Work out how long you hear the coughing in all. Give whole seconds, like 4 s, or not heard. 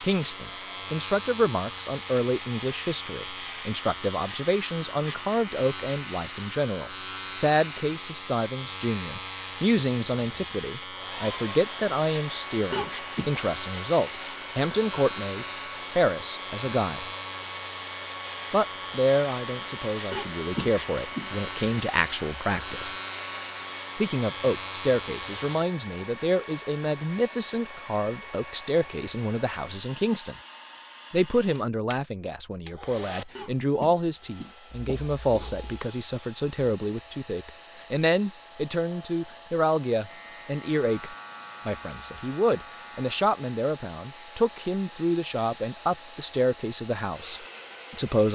4 s.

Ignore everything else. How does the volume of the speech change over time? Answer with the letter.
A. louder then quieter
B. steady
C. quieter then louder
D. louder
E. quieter
B.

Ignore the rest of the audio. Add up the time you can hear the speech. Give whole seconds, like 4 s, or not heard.
45 s.